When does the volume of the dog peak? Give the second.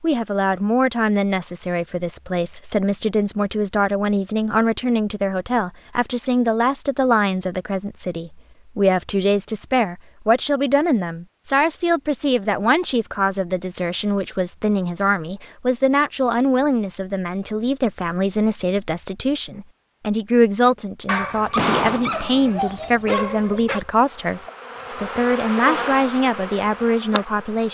22 s.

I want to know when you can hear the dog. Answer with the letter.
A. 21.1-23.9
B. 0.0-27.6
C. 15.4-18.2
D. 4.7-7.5
A.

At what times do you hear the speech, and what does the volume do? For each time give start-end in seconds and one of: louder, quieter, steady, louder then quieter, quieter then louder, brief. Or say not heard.
0.0-27.6 steady.